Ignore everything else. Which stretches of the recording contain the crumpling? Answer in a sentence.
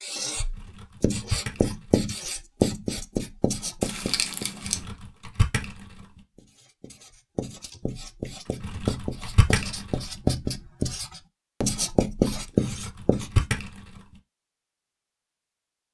You can hear the crumpling from 3.8 to 4.9 s.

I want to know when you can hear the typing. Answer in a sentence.
The typing can be heard from 0.6 to 1.9 s, from 4.7 to 6.0 s, from 8.6 to 10.0 s and from 12.6 to 14.0 s.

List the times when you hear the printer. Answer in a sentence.
The printer can't be heard in this clip.